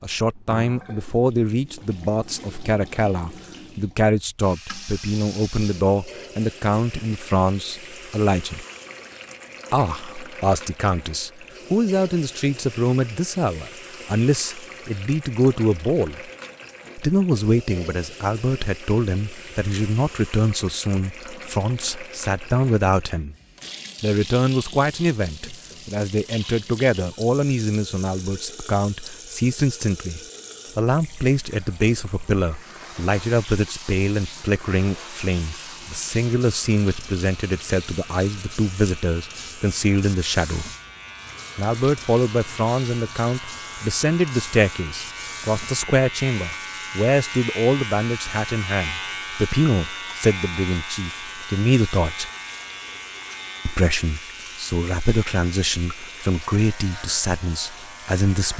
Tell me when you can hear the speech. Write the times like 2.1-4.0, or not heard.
0.0-8.7, 9.7-16.3, 16.9-23.4, 24.0-40.7, 41.5-52.3, 53.6-58.5.